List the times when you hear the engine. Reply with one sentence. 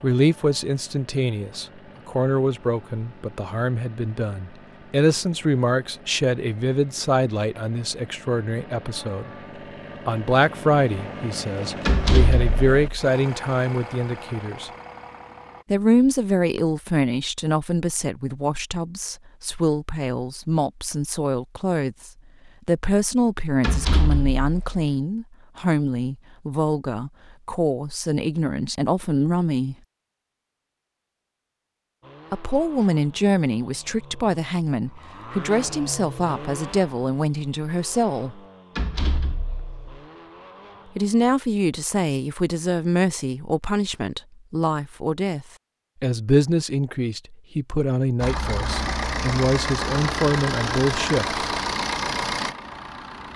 The engine can be heard from 0.0 to 15.7 s, from 32.0 to 41.4 s and from 48.2 to 53.3 s.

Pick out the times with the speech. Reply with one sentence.
The speech can be heard from 0.0 to 9.3 s, from 10.1 to 14.7 s, from 15.7 to 29.8 s, from 32.3 to 38.4 s and from 41.0 to 51.4 s.